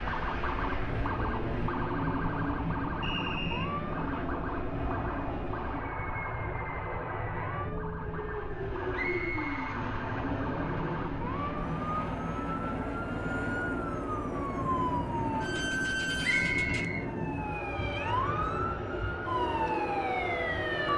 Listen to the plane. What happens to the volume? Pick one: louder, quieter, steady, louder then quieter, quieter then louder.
steady.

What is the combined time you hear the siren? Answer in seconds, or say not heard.
21 s.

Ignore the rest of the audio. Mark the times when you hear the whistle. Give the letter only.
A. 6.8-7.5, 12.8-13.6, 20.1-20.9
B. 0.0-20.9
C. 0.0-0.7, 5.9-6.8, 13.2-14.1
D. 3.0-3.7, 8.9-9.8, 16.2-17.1
D.